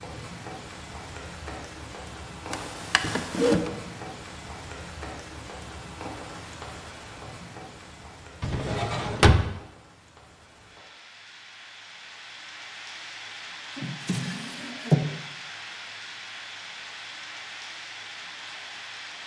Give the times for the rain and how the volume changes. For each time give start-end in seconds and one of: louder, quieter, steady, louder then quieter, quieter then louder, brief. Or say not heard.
0.0-19.2 quieter then louder.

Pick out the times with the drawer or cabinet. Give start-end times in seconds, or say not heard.
2.5-3.7, 8.4-9.4, 13.8-15.1.